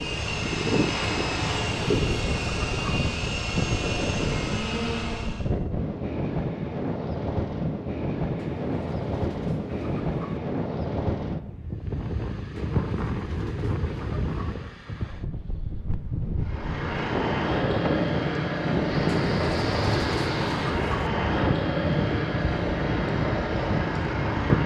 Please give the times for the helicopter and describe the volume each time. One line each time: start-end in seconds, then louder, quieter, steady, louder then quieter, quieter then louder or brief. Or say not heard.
0.0-5.5 steady
16.4-24.6 steady.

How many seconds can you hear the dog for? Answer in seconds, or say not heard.
not heard.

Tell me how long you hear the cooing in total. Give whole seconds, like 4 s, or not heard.
8 s.